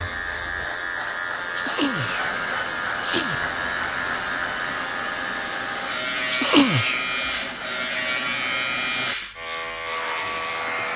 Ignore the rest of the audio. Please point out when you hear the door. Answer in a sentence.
You can't hear the door here.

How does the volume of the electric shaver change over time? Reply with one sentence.
The volume of the electric shaver stays about the same.